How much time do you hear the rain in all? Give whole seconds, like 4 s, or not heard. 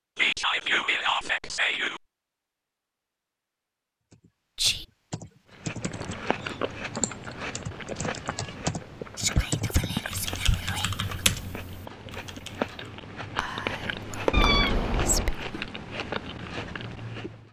not heard.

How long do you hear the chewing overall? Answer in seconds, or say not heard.
12 s.